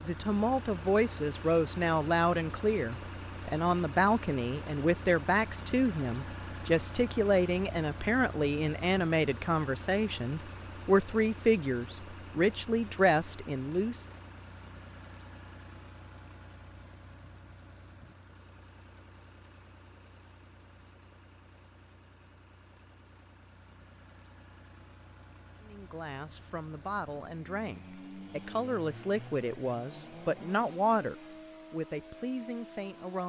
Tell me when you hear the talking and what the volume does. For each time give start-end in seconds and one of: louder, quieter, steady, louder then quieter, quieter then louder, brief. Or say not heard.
0.0-14.1 steady
25.6-33.2 louder then quieter.